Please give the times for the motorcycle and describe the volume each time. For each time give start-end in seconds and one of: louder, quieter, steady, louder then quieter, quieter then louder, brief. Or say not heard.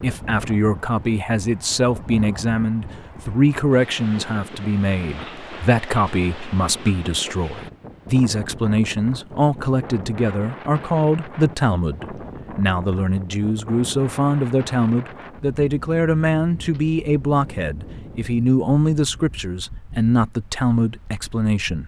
not heard.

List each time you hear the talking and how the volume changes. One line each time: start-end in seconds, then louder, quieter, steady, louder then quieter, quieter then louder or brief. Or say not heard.
0.0-21.8 steady.